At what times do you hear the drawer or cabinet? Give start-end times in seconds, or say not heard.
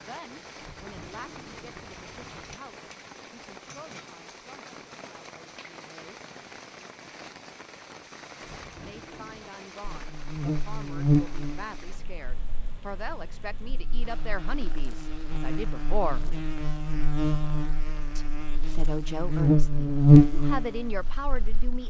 0.6-2.6, 8.4-9.6, 16.1-16.5.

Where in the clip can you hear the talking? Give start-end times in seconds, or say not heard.
0.0-6.3, 8.7-16.2, 18.1-21.8.